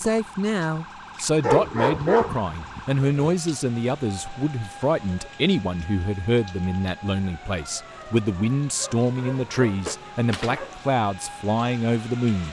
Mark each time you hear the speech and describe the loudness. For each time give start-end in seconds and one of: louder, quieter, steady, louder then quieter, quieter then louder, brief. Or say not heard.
0.0-12.4 steady.